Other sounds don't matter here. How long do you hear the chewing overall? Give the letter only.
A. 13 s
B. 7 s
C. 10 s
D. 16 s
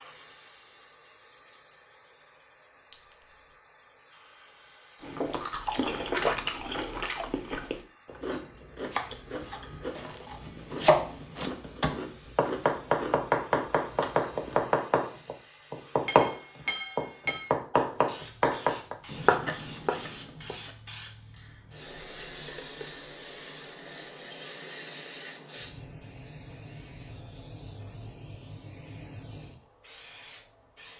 C.